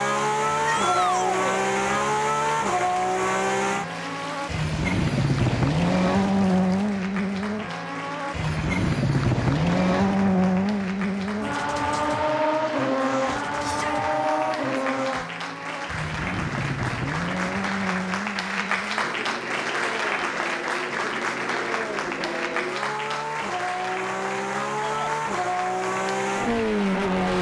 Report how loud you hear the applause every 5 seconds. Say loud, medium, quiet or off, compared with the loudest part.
medium, medium, medium, loud, loud, medium.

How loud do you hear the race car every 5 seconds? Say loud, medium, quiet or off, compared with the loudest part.
loud, loud, loud, medium, medium, loud.